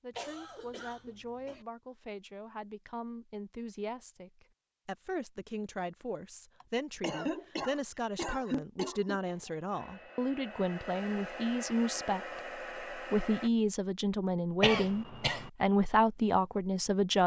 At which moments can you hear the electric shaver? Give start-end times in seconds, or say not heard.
not heard.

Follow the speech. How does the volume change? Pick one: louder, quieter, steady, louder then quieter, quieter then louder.
louder.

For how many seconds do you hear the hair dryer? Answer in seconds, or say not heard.
4 s.